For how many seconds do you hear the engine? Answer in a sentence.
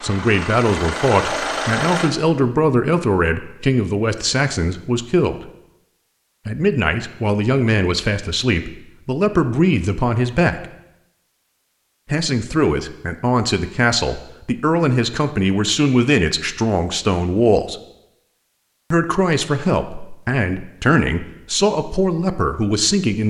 You can hear the engine for 2 seconds altogether.